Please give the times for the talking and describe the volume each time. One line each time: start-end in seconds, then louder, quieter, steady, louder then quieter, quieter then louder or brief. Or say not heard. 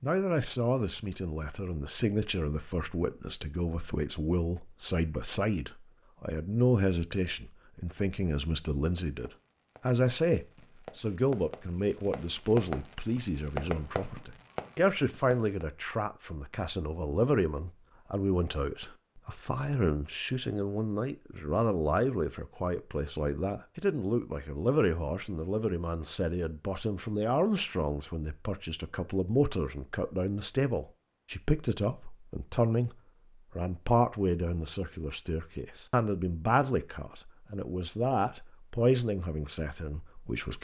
0.0-33.0 steady
33.5-40.5 steady.